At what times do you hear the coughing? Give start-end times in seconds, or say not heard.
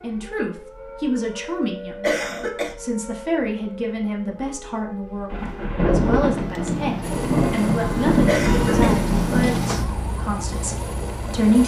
2.0-2.8, 8.2-8.9.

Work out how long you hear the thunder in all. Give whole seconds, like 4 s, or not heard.
4 s.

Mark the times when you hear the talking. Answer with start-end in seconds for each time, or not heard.
0.0-11.6.